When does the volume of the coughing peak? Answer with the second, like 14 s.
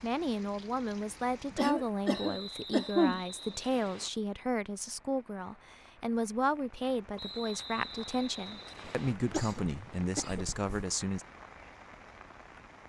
3 s.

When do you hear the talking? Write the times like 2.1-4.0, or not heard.
0.0-11.2.